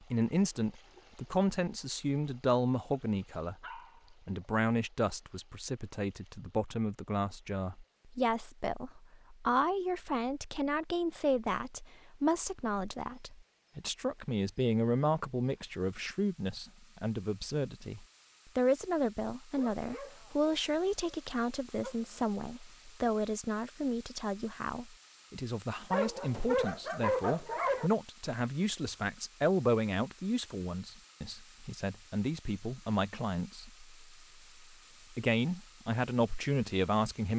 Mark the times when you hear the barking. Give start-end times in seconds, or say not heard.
3.6-4.0, 19.6-22.4, 25.9-27.9.